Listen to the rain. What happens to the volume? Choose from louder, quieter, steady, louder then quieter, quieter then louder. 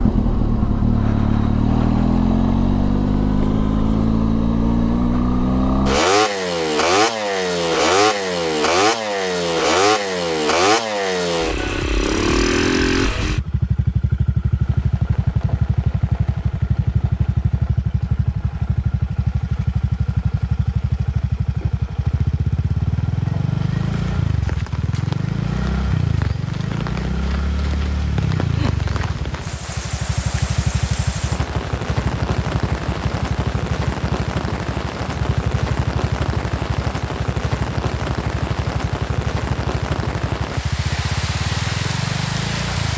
louder.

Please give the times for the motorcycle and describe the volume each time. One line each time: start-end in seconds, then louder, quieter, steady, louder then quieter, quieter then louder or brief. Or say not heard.
0.0-42.9 quieter.